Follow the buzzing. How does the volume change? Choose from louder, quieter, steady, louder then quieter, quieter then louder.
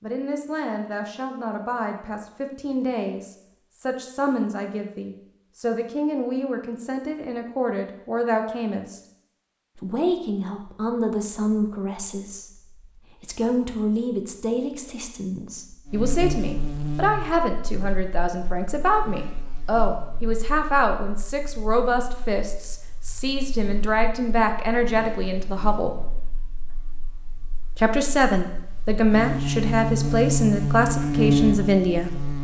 quieter then louder.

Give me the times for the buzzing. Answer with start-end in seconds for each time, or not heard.
15.8-32.4.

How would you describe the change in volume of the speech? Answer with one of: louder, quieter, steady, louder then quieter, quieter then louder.
louder.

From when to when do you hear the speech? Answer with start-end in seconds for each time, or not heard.
0.0-9.0, 9.8-25.9, 27.8-32.1.